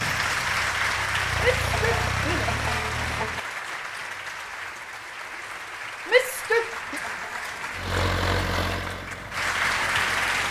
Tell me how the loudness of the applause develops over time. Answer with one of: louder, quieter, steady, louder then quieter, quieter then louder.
quieter then louder.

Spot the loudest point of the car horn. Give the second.
3 s.